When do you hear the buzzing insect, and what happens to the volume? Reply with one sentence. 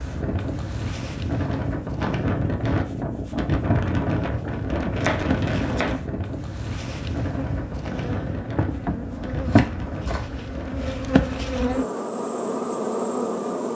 The buzzing insect can be heard from 0.0 to 13.6 s, getting louder.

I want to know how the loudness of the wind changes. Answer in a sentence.
The volume of the wind goes down.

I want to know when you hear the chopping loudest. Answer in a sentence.
The loudest moment of the chopping is at 5 seconds.